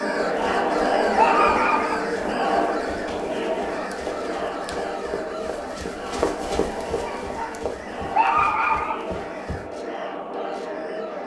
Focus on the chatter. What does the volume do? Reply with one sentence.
The volume of the chatter goes down.